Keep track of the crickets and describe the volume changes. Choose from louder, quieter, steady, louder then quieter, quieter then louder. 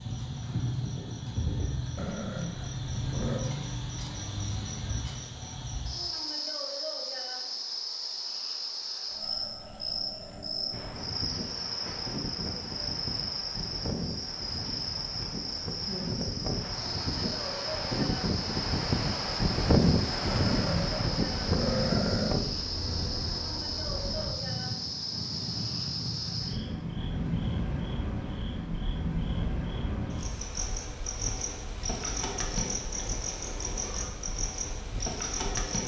steady.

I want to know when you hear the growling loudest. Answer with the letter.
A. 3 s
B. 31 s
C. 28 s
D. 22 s
D.